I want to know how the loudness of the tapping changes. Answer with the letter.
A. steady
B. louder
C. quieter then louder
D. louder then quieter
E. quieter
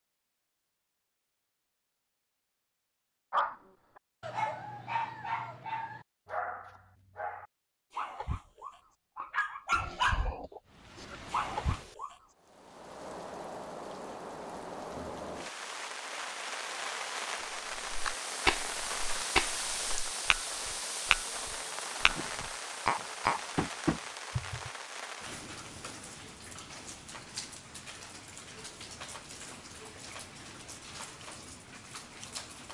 A.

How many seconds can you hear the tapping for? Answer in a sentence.
The tapping can be heard for 7 seconds in total.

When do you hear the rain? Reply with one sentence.
The rain can be heard from 10.7 to 32.7 s.